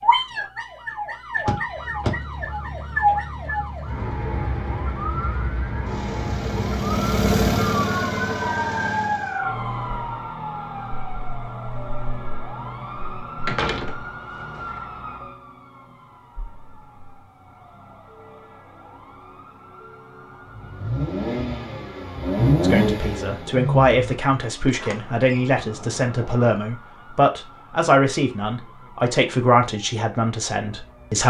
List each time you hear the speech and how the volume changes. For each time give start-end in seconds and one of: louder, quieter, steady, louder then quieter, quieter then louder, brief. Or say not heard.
22.6-31.2 steady.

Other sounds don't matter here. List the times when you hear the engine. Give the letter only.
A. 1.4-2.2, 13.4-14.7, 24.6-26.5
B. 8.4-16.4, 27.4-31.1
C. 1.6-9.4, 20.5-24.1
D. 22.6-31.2
C.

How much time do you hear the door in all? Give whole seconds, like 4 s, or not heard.
4 s.